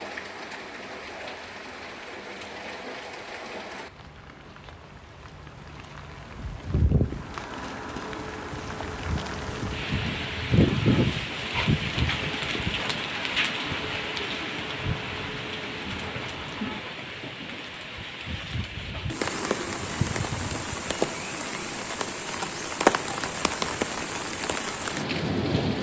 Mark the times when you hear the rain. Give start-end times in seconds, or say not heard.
0.0-25.7.